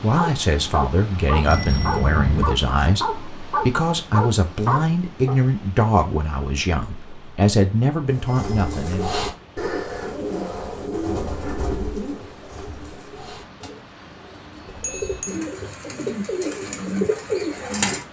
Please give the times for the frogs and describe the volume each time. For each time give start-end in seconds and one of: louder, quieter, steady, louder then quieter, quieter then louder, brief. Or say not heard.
not heard.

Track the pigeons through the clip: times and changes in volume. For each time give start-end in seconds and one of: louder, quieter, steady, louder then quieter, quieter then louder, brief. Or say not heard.
8.1-18.0 quieter then louder.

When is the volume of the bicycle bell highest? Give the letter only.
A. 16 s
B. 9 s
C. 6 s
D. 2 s
D.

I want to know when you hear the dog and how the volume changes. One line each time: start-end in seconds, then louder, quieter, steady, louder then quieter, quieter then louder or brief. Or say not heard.
0.0-5.4 louder.